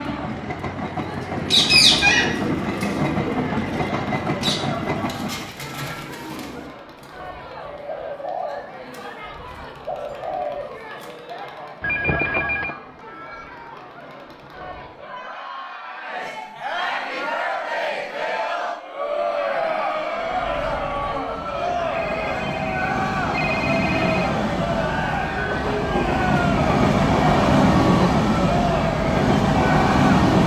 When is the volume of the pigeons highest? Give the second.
2 s.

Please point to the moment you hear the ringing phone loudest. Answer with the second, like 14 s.
12 s.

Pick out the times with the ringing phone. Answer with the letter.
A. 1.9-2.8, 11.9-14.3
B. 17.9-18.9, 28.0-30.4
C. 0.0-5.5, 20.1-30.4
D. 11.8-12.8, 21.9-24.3
D.